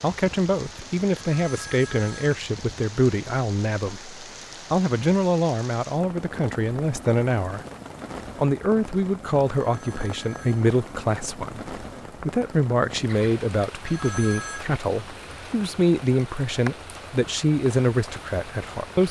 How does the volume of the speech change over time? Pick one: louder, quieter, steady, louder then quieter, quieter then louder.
steady.